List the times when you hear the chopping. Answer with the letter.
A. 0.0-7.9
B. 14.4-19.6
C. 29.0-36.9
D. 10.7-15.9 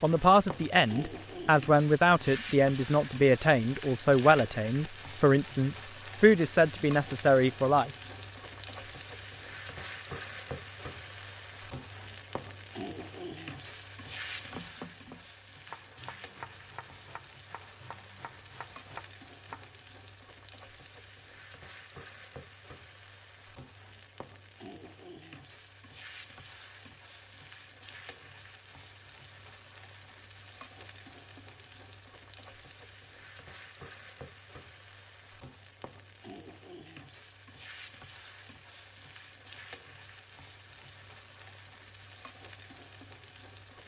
B.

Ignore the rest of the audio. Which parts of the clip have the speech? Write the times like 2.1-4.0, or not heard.
0.0-7.9.